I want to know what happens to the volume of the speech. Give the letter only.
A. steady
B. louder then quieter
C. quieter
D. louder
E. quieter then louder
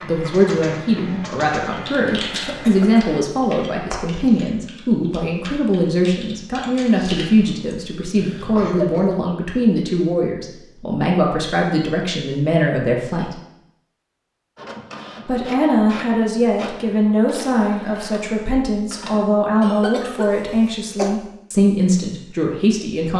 A.